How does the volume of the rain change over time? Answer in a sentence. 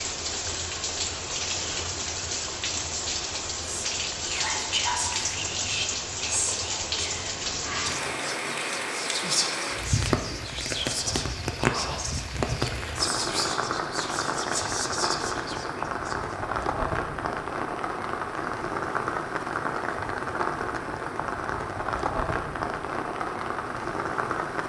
The loudness of the rain stays about the same.